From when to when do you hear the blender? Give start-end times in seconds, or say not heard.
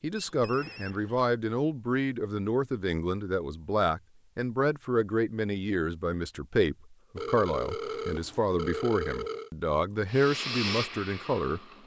10.1-11.8.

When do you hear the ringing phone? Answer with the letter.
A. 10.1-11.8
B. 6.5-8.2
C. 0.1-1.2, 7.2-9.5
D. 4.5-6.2
C.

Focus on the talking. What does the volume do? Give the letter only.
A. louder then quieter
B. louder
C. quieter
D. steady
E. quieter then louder
D.